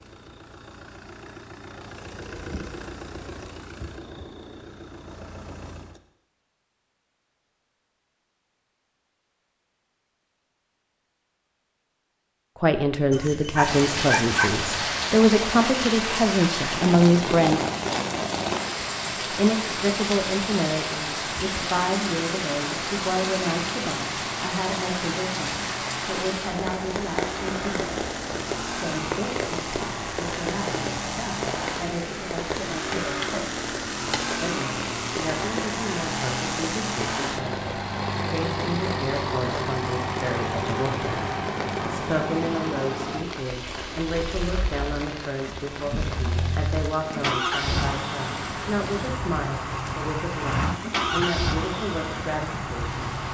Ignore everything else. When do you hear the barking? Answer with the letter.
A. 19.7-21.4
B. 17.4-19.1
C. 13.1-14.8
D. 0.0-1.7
C.